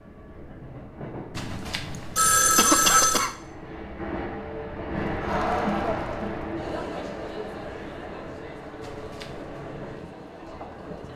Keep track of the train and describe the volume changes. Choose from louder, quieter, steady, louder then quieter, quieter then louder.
louder then quieter.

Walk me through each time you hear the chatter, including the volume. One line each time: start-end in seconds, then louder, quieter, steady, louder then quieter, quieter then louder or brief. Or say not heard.
5.0-11.1 quieter.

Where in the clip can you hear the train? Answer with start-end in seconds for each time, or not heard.
0.0-11.1.